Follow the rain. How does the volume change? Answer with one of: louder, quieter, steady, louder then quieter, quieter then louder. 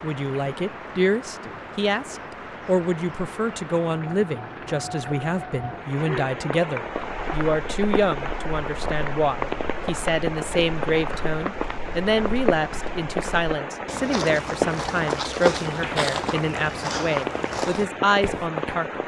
louder.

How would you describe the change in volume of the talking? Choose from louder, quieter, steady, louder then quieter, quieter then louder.
steady.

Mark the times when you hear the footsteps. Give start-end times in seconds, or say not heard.
6.8-18.8.